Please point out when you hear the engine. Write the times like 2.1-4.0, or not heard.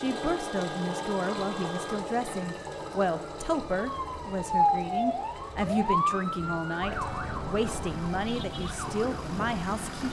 0.0-10.0.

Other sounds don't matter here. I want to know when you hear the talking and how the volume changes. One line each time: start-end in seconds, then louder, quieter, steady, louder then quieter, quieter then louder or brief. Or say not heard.
0.0-10.0 steady.